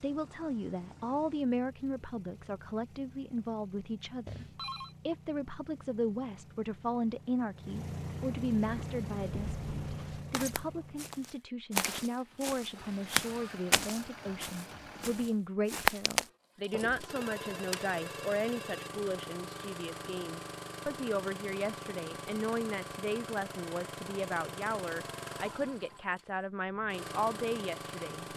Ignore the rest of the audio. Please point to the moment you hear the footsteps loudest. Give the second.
16 s.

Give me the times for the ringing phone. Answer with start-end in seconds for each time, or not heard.
4.2-5.0, 17.0-18.9.